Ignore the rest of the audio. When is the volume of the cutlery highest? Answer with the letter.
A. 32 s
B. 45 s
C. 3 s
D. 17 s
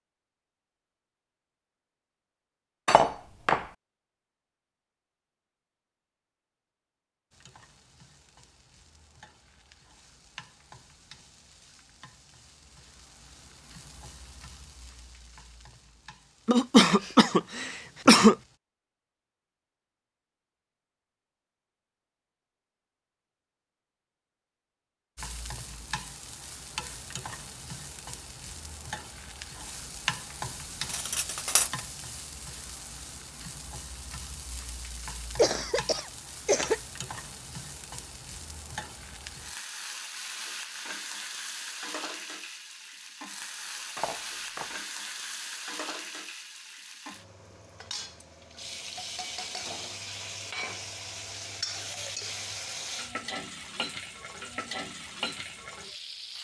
C.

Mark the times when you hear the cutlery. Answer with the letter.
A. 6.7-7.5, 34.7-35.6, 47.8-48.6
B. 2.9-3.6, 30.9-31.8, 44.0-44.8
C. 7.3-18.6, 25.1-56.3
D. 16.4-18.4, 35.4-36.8
B.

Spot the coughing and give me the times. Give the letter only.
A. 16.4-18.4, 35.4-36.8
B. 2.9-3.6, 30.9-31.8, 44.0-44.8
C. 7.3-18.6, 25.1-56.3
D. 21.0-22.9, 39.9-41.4
A.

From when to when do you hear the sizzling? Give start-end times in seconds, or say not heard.
7.3-18.6, 25.1-56.3.